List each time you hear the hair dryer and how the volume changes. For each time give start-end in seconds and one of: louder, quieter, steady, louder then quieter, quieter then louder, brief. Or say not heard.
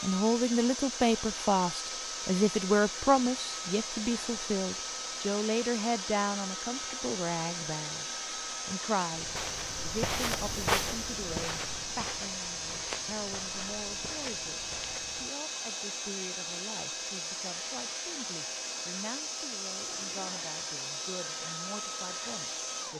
0.0-22.9 steady.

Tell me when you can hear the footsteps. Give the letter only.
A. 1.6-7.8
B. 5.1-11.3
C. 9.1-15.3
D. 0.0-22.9
C.